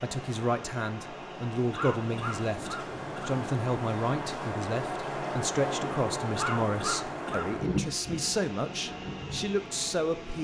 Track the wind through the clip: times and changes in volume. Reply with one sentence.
You can hear the wind from 0.0 to 10.3 s, getting louder then quieter.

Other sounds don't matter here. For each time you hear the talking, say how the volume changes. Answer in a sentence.
The talking can be heard from 0.0 to 10.3 s, at a steady volume.